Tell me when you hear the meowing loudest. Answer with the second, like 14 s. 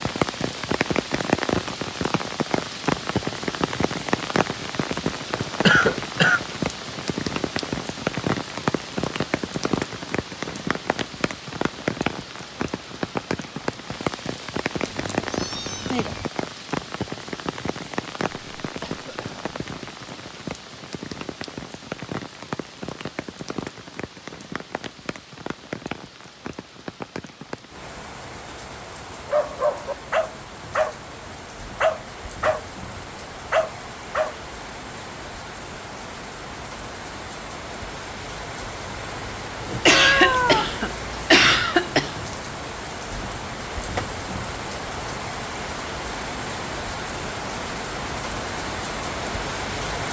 40 s.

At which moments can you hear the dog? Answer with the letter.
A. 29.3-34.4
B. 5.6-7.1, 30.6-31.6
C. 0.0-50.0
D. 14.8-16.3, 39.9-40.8
A.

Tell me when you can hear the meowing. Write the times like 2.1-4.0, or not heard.
14.8-16.3, 39.9-40.8.